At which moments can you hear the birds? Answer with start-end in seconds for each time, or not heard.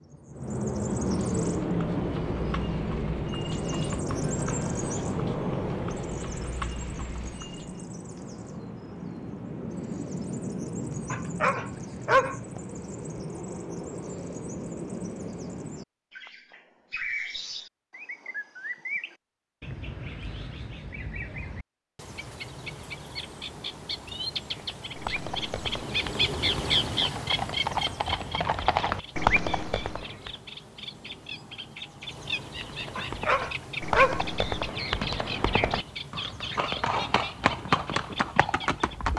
0.0-39.1.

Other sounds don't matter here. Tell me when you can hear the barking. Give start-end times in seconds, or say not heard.
11.1-12.3, 33.0-34.2.